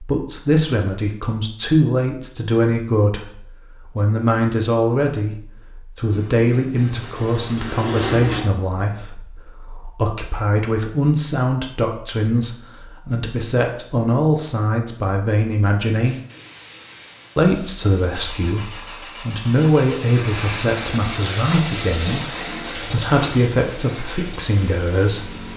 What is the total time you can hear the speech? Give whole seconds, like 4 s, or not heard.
24 s.